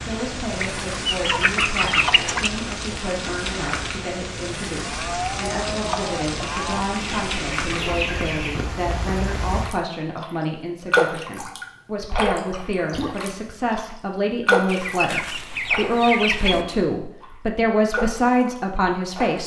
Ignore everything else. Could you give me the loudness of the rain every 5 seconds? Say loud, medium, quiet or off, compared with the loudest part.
medium, medium, loud, medium.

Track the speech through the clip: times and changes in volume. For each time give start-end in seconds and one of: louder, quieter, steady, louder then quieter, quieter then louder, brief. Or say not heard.
0.0-19.4 louder.